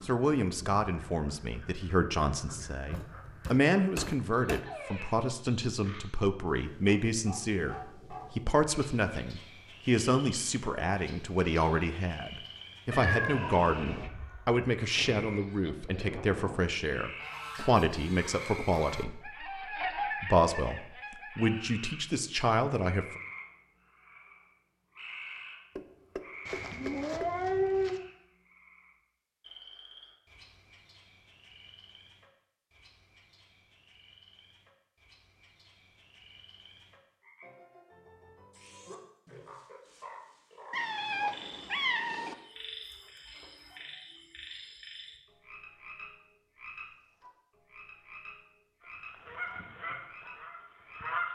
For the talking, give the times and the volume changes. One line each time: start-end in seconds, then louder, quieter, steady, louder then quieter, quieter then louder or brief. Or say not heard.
0.0-23.2 steady.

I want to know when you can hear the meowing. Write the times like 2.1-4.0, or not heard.
12.9-14.1, 26.4-28.1, 40.7-42.4.